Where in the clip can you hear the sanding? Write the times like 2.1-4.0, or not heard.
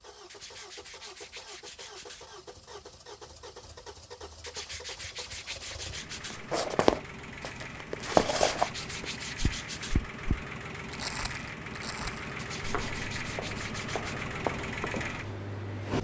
0.2-2.3, 4.4-6.5, 8.0-10.0, 12.3-14.3.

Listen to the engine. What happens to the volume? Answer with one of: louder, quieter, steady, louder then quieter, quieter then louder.
louder.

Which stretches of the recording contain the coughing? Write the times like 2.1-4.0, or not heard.
not heard.